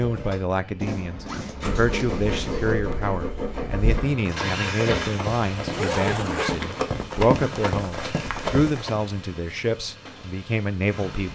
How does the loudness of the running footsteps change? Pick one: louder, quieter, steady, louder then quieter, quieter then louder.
louder.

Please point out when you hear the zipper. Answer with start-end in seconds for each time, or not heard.
0.8-2.8, 5.7-6.8.